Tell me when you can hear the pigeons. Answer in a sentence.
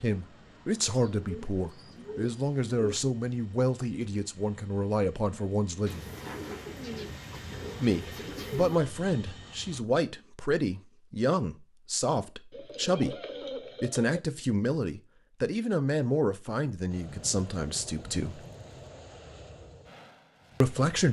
The pigeons can be heard from 0.9 to 3.0 s, from 5.8 to 8.8 s, from 12.5 to 14.2 s and from 17.1 to 18.9 s.